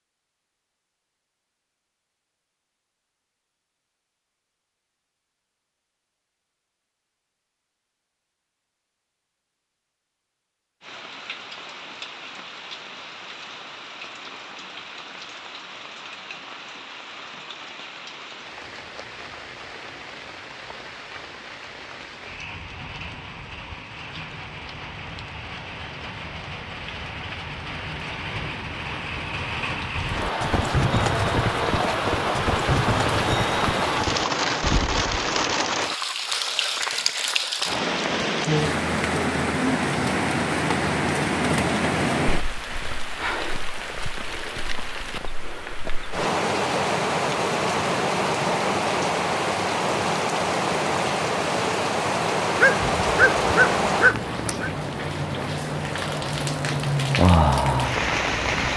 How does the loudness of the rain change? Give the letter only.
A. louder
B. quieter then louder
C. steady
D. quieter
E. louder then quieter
A.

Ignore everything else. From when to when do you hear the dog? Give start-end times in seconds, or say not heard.
52.5-54.7.